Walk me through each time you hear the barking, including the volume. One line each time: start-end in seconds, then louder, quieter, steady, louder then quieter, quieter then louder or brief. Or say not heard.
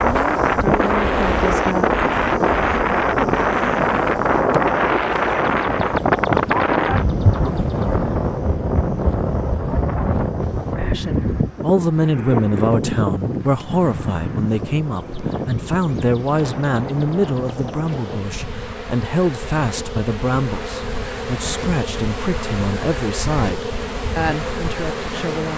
not heard.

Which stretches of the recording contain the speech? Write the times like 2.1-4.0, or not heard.
0.0-1.9, 10.9-25.5.